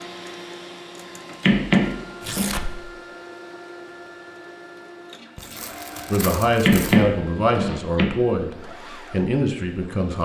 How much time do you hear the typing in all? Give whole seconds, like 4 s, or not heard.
not heard.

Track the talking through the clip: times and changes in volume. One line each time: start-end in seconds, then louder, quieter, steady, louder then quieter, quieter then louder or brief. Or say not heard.
6.1-10.2 quieter then louder.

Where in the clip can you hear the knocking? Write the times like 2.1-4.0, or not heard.
1.4-2.5, 6.6-8.1.